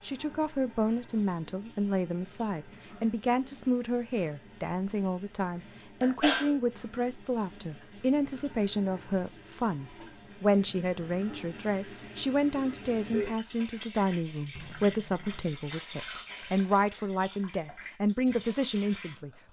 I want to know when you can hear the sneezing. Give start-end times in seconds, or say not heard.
6.0-6.5.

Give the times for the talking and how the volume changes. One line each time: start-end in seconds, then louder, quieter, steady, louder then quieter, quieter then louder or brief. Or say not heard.
0.0-19.3 steady.